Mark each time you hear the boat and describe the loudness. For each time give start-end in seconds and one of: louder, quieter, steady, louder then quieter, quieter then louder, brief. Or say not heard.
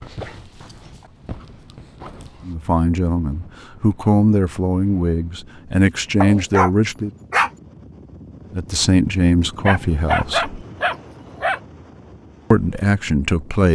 not heard.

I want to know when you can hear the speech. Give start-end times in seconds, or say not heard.
2.5-7.1, 8.5-10.7, 12.5-13.6.